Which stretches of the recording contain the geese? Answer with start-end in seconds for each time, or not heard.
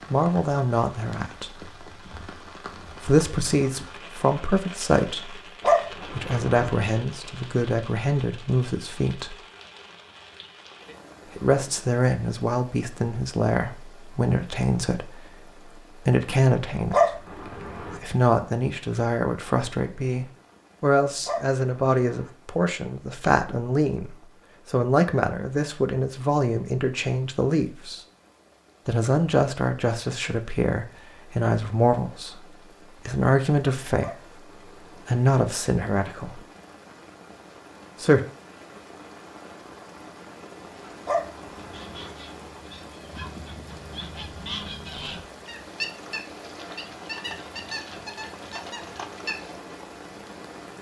40.8-49.6.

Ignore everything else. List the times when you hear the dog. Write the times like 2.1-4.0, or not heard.
5.6-6.7, 16.9-18.0, 21.2-22.3, 34.0-35.0, 41.0-42.1.